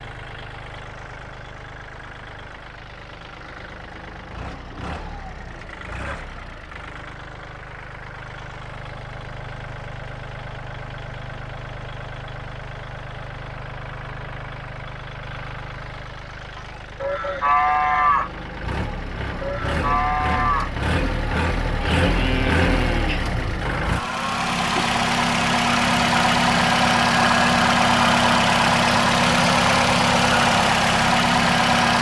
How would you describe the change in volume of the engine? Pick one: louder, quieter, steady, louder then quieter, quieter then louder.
louder.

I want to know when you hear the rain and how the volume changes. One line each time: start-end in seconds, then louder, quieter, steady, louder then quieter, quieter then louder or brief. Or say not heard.
not heard.